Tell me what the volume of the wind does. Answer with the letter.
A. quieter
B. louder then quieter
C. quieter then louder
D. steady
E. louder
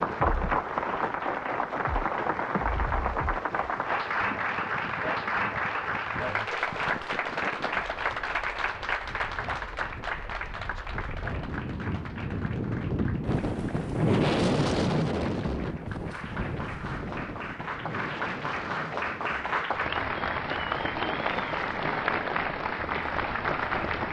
B.